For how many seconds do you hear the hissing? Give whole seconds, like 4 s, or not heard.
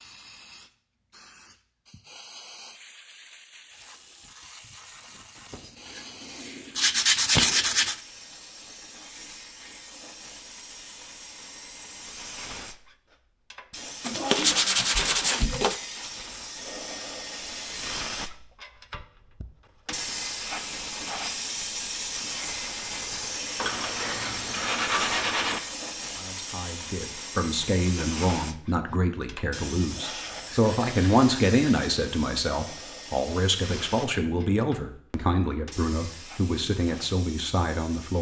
38 s.